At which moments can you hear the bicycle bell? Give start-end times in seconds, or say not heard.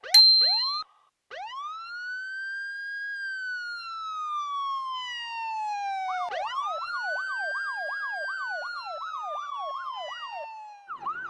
0.1-0.8.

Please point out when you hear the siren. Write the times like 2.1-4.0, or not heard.
0.0-11.2.